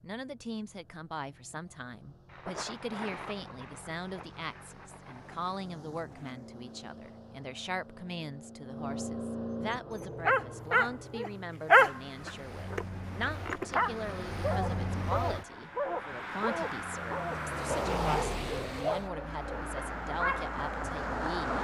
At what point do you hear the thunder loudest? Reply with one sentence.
The loudest moment of the thunder is at 3 seconds.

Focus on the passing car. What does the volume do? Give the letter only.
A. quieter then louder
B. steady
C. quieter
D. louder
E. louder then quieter
D.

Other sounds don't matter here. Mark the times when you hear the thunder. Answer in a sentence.
The thunder can be heard from 2.2 to 5.5 s.